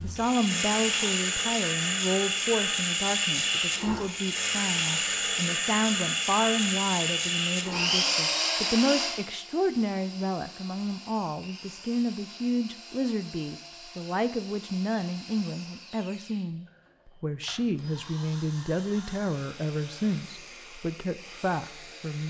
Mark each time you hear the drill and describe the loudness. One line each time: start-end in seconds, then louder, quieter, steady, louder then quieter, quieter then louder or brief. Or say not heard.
0.0-22.2 quieter.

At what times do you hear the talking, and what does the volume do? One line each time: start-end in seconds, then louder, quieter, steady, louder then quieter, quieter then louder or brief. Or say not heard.
0.0-22.2 steady.